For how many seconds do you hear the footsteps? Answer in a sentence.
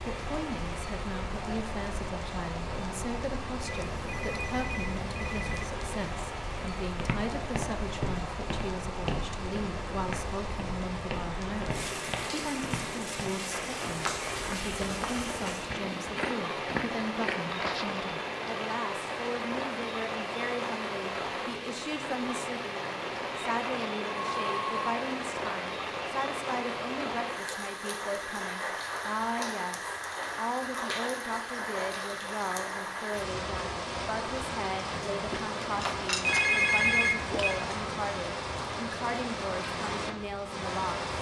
The footsteps can be heard for 11 seconds in total.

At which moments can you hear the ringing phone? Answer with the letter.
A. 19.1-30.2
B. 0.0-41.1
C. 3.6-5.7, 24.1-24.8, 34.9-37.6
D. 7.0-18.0
C.